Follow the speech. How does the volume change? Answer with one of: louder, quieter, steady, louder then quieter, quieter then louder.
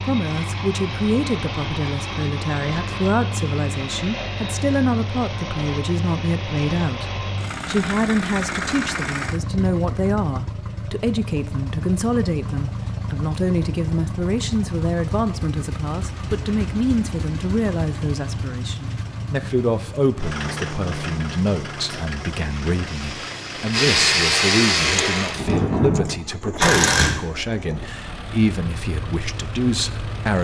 steady.